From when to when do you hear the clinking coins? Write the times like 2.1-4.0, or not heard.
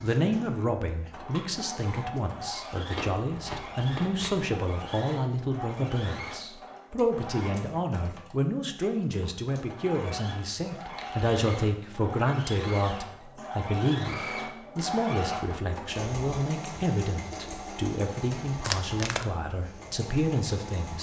not heard.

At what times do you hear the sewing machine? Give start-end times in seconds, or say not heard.
0.0-20.9.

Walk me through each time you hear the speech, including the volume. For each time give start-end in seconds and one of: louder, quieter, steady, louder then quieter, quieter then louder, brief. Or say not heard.
0.0-20.9 steady.